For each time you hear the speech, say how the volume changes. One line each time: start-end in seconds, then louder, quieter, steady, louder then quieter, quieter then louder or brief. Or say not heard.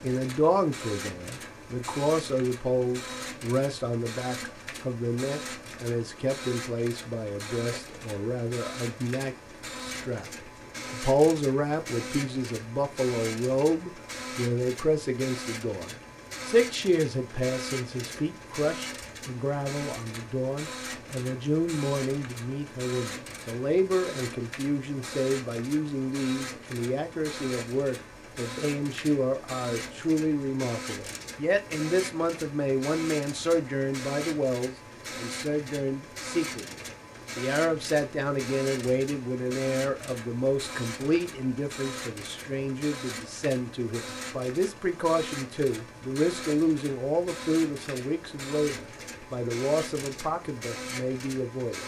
0.0-51.8 steady.